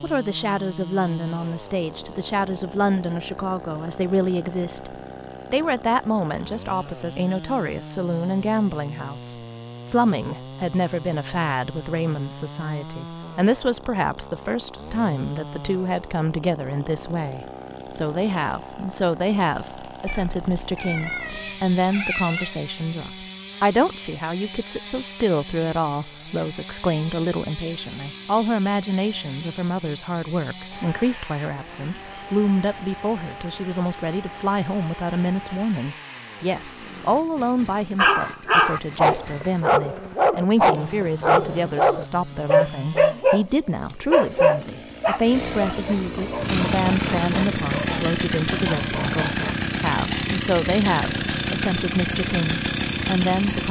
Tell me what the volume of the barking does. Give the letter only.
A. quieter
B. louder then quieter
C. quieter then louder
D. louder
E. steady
A.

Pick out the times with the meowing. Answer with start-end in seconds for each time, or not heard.
20.1-22.6.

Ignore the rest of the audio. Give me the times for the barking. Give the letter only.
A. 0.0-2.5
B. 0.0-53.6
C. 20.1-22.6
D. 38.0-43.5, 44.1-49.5
D.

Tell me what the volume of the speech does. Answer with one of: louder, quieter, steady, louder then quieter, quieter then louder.
steady.